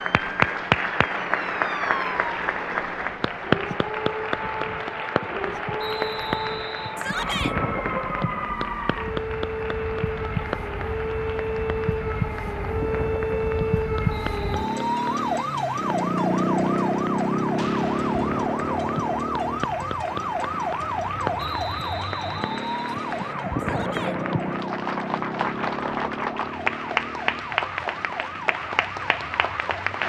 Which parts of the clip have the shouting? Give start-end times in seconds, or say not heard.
7.0-7.5, 23.6-24.2.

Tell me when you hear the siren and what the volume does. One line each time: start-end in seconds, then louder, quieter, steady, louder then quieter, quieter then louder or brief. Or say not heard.
0.0-30.0 louder then quieter.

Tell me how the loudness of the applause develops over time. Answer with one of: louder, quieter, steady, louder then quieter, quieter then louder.
quieter then louder.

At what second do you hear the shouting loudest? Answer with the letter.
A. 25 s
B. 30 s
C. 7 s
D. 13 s
C.